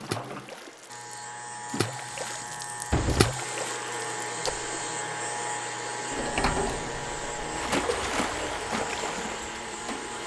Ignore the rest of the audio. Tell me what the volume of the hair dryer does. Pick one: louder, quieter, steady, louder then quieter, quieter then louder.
louder.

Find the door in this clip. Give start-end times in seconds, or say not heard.
2.2-3.4, 6.1-7.6.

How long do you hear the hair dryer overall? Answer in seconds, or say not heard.
10 s.